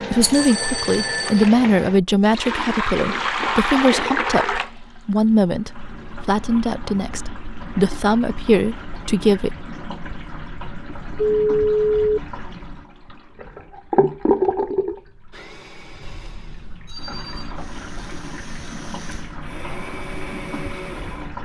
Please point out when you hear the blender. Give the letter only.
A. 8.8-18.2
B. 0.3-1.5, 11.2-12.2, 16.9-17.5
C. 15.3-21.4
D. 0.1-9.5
C.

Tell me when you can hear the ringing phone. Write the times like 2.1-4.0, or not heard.
0.3-1.5, 11.2-12.2, 16.9-17.5.